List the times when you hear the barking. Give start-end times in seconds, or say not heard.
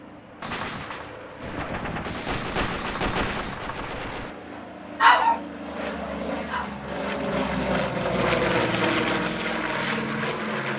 5.0-6.8.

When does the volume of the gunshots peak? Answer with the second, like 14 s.
3 s.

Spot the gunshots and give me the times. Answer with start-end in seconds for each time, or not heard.
0.4-4.3.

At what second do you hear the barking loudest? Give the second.
5 s.